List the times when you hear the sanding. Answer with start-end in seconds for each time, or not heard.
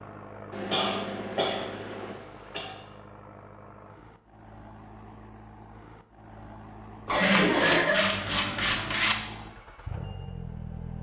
7.2-9.2.